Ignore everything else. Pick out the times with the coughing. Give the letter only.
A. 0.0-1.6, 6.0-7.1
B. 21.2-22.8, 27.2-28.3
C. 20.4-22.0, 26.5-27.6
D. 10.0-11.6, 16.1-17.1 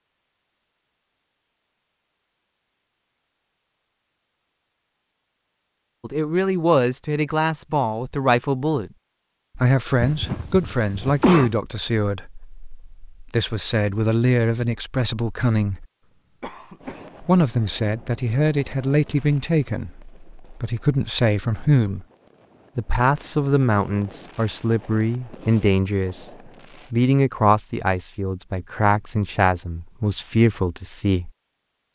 D.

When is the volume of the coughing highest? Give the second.
11 s.